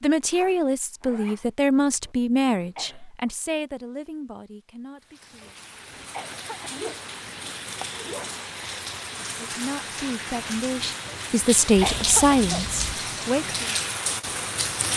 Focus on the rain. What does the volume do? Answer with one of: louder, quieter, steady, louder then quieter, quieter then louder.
louder.